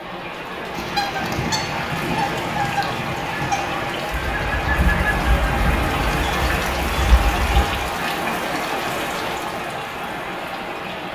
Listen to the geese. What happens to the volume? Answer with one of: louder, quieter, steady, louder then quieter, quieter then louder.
quieter.